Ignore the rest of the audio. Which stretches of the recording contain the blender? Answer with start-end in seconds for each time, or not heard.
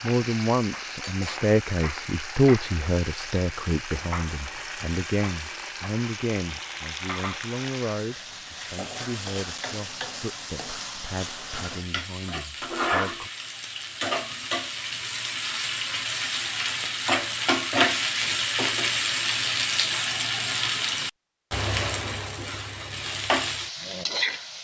not heard.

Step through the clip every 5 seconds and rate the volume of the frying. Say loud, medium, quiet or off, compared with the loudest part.
medium, medium, medium, loud, loud.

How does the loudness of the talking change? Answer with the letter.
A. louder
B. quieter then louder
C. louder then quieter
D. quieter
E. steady
D.